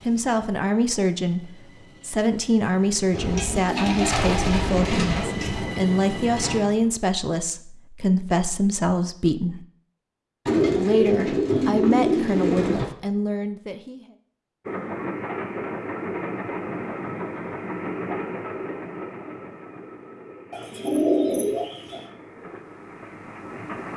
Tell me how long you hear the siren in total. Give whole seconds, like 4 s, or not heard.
not heard.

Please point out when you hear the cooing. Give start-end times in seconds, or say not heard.
3.1-5.7, 10.4-12.9, 20.5-22.0.